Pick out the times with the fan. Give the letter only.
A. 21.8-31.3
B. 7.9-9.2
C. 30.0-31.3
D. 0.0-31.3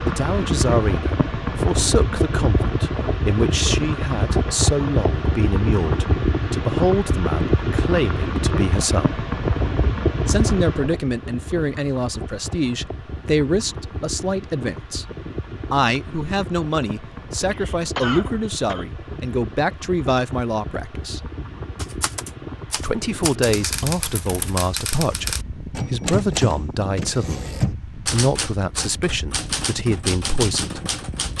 D.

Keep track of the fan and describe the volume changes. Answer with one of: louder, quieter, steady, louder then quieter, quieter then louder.
quieter.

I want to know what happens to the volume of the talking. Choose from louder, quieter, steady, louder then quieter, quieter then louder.
steady.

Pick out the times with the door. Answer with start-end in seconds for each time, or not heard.
not heard.